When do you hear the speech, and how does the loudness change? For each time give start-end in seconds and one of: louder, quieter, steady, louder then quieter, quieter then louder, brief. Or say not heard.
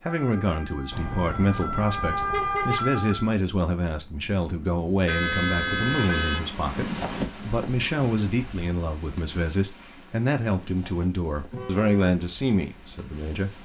0.0-13.5 steady.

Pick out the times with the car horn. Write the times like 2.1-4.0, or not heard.
0.9-2.9, 5.0-6.5, 11.5-12.2.